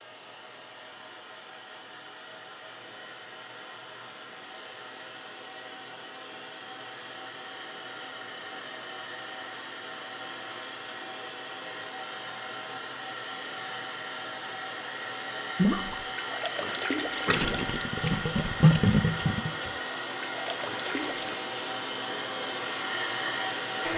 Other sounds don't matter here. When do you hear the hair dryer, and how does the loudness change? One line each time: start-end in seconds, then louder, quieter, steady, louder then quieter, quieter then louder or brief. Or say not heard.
0.0-23.9 louder.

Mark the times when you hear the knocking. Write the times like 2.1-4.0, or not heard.
not heard.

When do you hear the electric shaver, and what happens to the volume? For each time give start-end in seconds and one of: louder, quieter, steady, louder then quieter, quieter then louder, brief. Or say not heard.
not heard.